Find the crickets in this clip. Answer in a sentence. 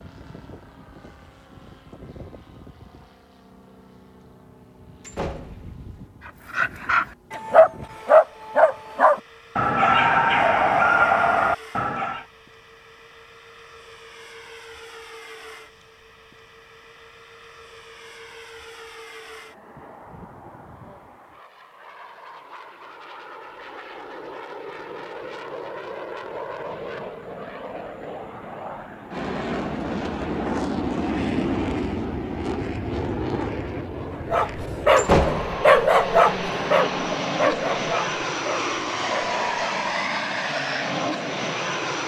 The crickets can't be heard in this clip.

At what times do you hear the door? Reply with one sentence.
The door can be heard from 5.0 to 6.0 s and from 35.0 to 35.6 s.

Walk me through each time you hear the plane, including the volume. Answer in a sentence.
You can hear the plane from 0.0 to 42.0 s, getting louder.